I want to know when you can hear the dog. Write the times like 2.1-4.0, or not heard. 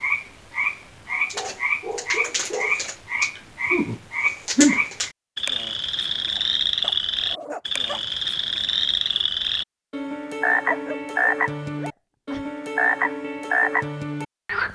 1.1-2.8, 6.3-8.0, 10.5-12.5.